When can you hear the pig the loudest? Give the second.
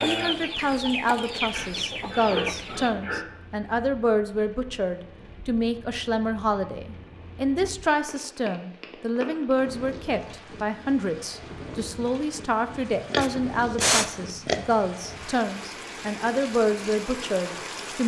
14 s.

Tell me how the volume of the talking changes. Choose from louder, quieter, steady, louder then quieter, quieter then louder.
steady.